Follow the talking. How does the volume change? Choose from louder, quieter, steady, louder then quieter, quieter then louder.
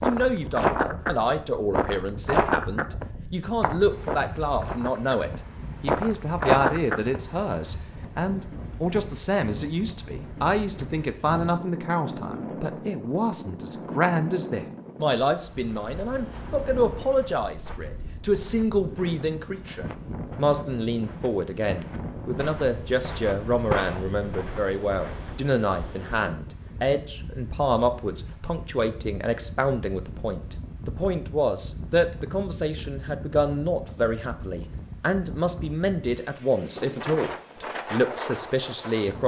steady.